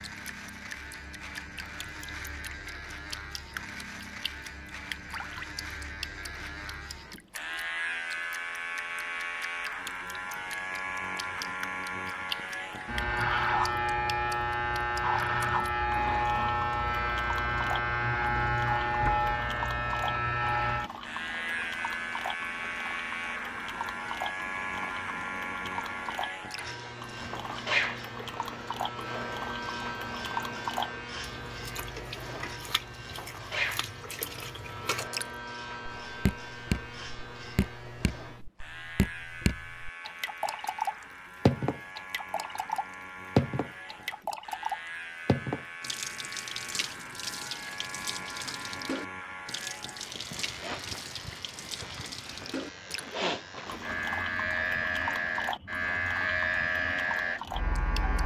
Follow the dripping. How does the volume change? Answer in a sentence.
The loudness of the dripping goes up, then down.